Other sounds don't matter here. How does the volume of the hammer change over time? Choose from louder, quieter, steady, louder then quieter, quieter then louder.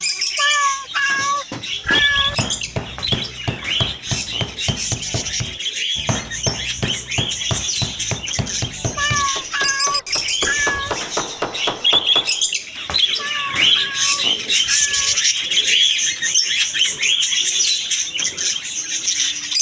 steady.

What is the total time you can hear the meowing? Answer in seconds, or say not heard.
6 s.